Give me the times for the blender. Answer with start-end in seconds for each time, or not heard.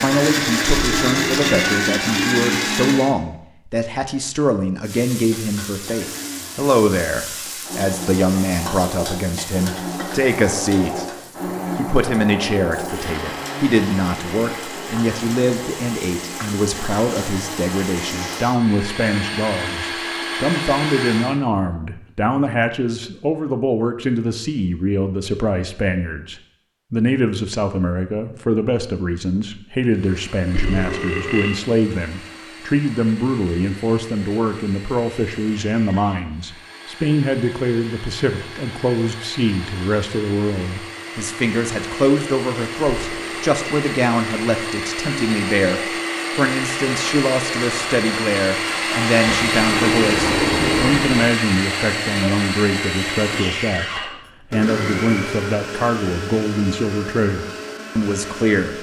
0.0-3.1, 5.8-21.4, 29.9-58.7.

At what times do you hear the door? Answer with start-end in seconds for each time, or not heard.
49.3-51.4.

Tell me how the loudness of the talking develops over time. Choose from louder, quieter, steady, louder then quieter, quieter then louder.
steady.